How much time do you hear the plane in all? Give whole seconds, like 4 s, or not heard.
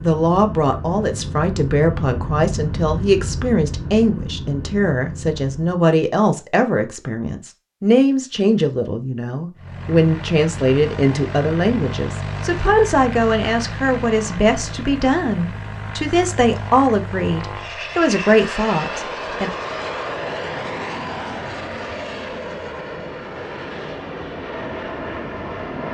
22 s.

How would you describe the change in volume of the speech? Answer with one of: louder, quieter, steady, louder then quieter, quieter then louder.
steady.